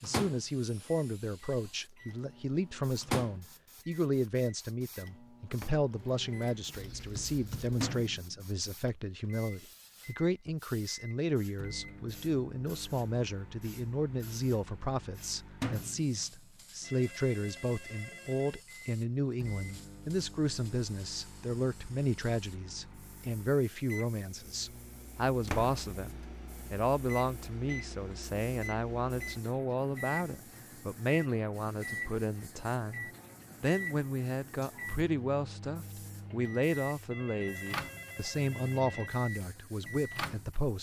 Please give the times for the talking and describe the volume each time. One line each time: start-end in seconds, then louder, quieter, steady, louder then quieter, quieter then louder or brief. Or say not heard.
0.0-26.1 steady
26.7-40.7 steady.